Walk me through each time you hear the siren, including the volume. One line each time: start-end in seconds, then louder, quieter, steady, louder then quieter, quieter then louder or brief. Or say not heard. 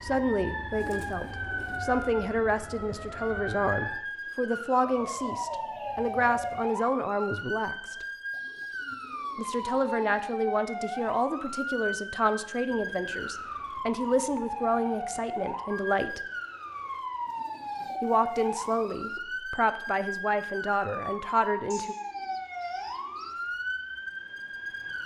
0.0-25.0 steady.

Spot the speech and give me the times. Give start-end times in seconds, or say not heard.
0.0-8.0, 9.3-16.2, 18.0-21.9.